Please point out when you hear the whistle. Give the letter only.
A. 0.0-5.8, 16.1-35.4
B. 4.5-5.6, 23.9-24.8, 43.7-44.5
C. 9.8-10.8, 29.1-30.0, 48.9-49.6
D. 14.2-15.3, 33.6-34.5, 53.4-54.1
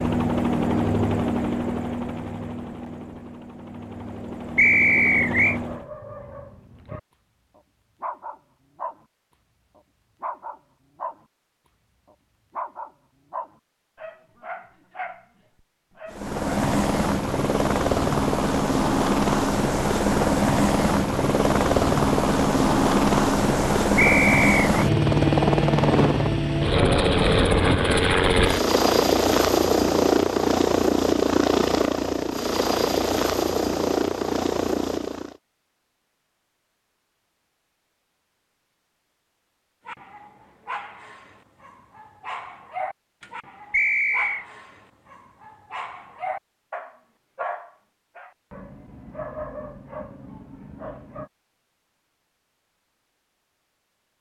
B.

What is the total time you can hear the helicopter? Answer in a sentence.
You can hear the helicopter for 25 seconds altogether.